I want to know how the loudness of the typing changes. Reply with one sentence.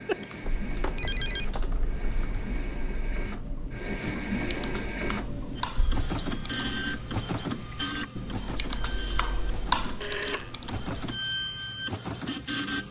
The loudness of the typing goes up.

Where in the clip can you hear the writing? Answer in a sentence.
You can't hear the writing here.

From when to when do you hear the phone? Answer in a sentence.
The phone can be heard from 0.1 to 1.7 s, from 5.8 to 6.5 s and from 10.0 to 10.5 s.